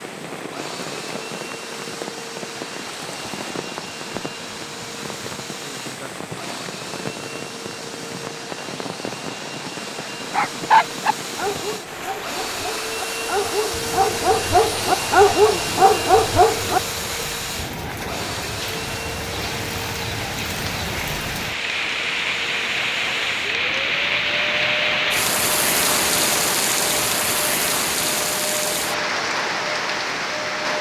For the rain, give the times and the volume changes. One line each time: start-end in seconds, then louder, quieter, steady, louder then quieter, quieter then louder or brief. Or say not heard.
0.0-30.7 louder.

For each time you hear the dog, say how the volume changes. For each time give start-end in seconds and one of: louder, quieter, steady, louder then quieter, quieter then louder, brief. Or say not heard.
10.0-17.2 quieter then louder.